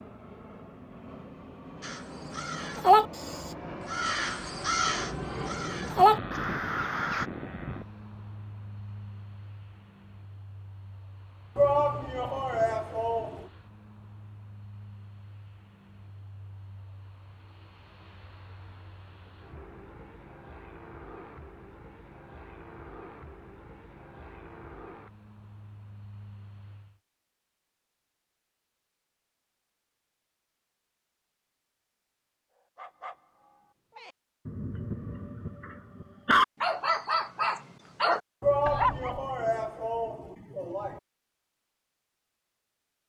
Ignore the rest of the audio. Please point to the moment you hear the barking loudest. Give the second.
36 s.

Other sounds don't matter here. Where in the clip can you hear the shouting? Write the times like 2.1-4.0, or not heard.
11.6-13.5, 38.4-41.0.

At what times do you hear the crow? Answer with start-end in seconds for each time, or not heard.
1.8-7.2.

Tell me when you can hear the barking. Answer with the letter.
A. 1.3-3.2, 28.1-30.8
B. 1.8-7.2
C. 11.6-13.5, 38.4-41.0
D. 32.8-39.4
D.